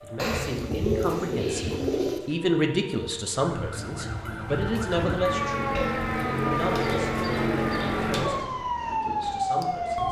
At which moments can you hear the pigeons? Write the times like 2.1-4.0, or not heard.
0.1-2.2, 5.8-8.4.